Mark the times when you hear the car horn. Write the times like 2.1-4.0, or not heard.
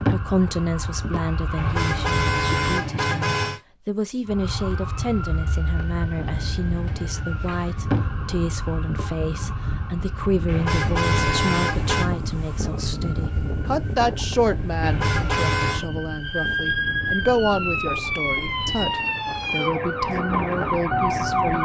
1.6-3.6, 10.4-12.1, 14.8-15.8.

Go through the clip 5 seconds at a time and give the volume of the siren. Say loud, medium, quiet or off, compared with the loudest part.
medium, medium, quiet, loud, loud.